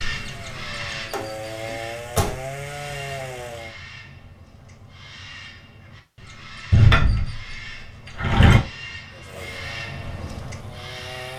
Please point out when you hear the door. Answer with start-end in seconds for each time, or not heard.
1.1-2.4, 6.7-8.6.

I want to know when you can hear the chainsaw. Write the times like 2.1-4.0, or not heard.
0.0-3.8, 9.1-11.3.